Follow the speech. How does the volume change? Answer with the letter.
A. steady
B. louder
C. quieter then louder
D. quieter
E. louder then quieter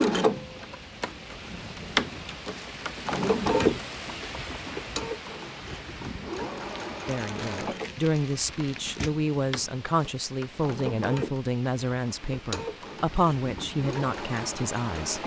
A.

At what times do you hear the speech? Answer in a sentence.
You can hear the speech from 7.0 to 15.2 s.